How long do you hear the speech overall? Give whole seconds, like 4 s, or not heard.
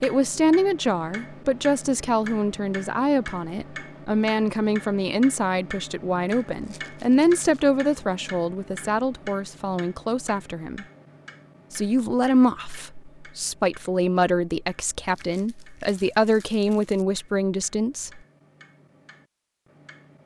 17 s.